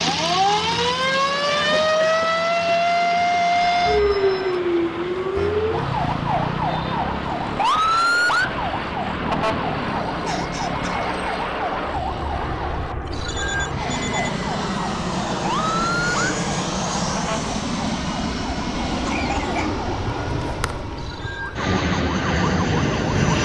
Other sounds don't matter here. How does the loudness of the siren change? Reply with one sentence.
The loudness of the siren goes down.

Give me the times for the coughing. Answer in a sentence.
You can hear the coughing from 1.4 to 2.2 s, from 10.2 to 11.0 s and from 19.1 to 19.8 s.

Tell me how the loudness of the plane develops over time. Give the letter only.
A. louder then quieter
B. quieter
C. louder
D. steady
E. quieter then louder
C.